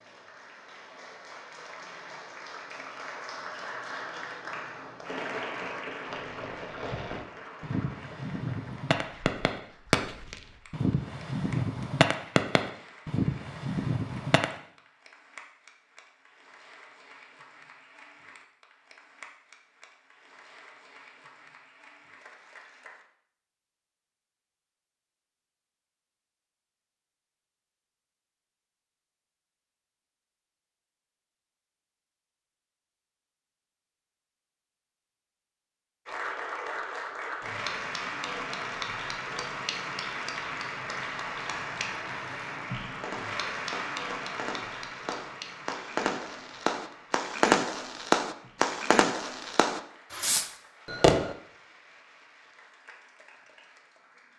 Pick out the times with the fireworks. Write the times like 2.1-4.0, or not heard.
6.0-14.4, 42.8-51.4.